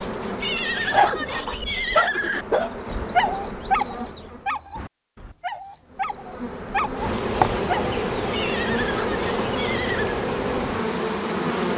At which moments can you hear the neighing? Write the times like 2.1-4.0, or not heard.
0.4-2.5, 8.3-10.2.